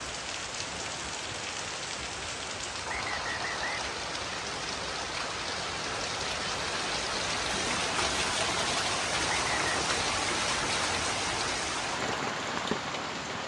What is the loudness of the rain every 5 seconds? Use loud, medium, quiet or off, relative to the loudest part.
medium, loud, loud.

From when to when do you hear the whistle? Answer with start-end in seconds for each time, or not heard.
2.9-3.9, 9.2-9.7.